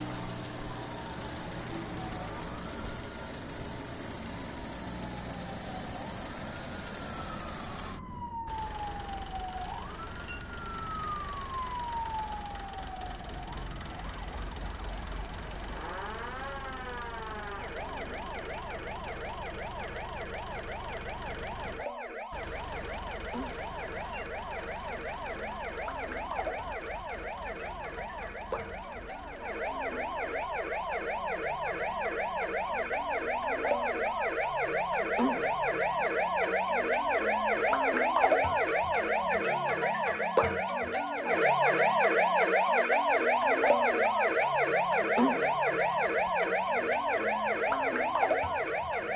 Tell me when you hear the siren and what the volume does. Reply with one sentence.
You can hear the siren from 0.0 to 49.1 s, getting louder.